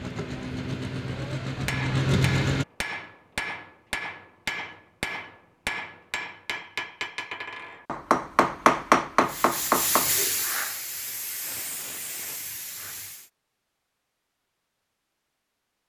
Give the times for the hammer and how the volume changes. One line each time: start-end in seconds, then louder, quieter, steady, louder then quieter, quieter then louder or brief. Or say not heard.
1.6-10.2 louder.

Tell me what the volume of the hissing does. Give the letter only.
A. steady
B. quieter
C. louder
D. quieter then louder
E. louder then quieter
B.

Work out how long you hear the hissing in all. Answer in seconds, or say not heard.
4 s.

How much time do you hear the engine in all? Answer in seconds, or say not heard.
3 s.